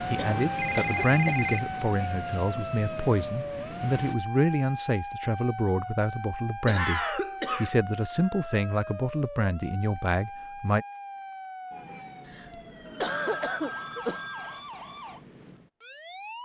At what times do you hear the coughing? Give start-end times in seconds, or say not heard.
0.1-1.4, 6.7-7.8, 12.2-14.2.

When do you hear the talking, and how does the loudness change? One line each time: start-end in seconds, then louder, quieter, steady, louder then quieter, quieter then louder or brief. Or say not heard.
0.0-10.8 steady.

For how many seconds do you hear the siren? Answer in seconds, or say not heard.
16 s.